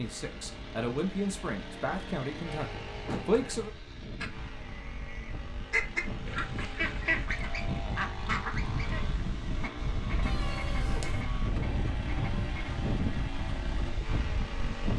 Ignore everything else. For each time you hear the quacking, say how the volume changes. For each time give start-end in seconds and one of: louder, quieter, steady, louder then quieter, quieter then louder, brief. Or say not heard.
4.2-12.7 quieter.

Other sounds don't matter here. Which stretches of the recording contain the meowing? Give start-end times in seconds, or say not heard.
10.2-11.2.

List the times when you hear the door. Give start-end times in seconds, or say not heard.
3.0-3.5.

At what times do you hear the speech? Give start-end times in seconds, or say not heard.
0.0-3.7.